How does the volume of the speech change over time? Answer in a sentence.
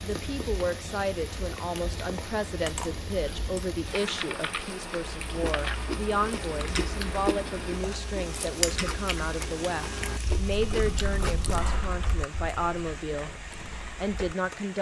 The volume of the speech stays about the same.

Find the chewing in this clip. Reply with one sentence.
You can hear the chewing from 5.0 to 11.4 s.